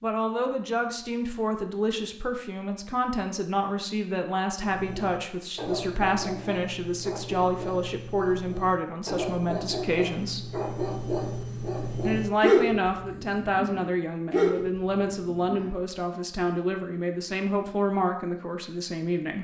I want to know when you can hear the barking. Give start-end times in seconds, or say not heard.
4.6-16.0.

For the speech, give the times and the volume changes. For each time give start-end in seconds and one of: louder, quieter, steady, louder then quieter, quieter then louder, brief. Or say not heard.
0.0-10.5 steady
12.1-19.4 steady.